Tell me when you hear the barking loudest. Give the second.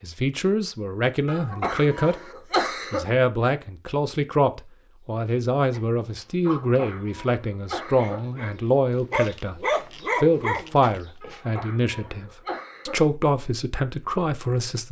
10 s.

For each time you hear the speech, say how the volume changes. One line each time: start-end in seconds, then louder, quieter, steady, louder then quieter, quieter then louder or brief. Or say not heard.
0.0-2.1 brief
2.9-14.8 steady.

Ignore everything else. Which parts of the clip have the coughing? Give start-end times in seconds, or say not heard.
1.2-3.1, 6.6-8.2, 11.2-13.1.